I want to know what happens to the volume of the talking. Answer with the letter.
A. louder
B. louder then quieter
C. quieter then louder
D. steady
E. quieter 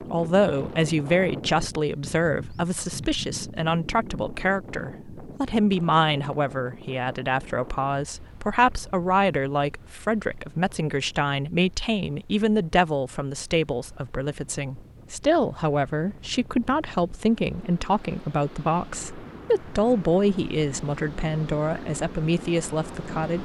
D.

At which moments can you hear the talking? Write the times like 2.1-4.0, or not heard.
0.0-23.3.